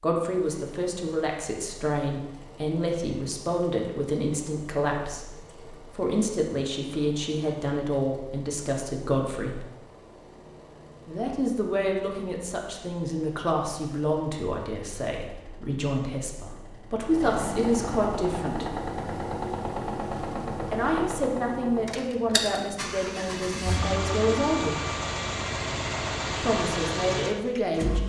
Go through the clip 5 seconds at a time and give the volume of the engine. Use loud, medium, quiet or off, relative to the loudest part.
quiet, quiet, quiet, loud, loud, loud.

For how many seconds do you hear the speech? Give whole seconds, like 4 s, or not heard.
23 s.